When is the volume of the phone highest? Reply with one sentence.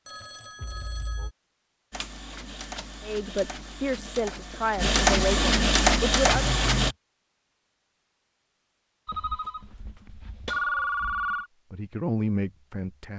The loudest moment of the phone is at 11 seconds.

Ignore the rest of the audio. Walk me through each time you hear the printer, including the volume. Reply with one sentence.
The printer can be heard from 1.9 to 7.0 s, getting louder.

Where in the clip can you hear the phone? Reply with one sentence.
The phone can be heard from 0.1 to 1.4 s, from 6.3 to 7.0 s and from 9.1 to 11.4 s.